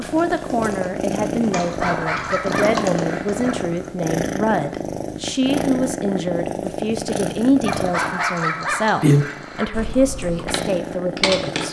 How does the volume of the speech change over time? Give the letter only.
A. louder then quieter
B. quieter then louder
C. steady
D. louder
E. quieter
C.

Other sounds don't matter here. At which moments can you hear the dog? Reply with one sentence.
You can hear the dog from 1.5 to 3.5 s and from 7.7 to 9.7 s.